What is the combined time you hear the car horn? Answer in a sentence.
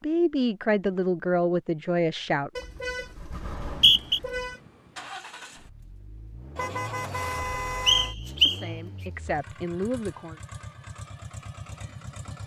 The car horn can be heard for 4 seconds in total.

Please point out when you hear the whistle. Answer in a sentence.
You can hear the whistle from 3.4 to 4.2 s and from 7.8 to 8.6 s.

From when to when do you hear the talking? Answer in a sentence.
You can hear the talking from 0.0 to 2.5 s and from 8.4 to 10.3 s.